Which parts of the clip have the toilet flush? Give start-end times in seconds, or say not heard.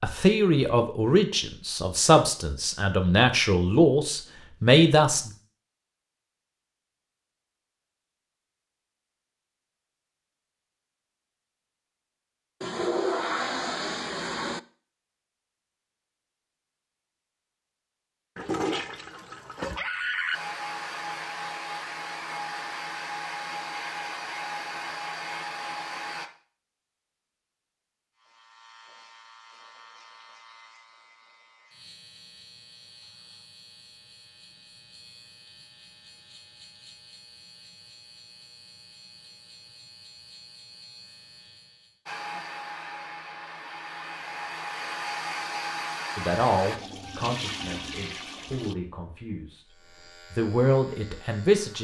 12.6-14.6, 18.4-20.4, 46.8-48.8.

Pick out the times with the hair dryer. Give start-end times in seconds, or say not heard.
20.3-26.3, 42.0-46.8.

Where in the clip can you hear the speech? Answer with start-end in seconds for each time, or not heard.
0.0-5.3, 46.1-51.7.